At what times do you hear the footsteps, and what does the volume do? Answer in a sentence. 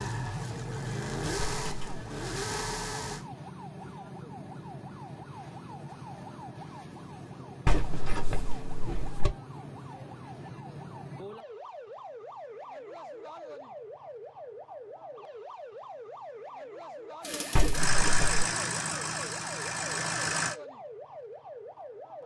You can't hear the footsteps here.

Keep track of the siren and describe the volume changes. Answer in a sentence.
The loudness of the siren stays about the same.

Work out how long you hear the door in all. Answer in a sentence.
The door can be heard for 3 seconds in total.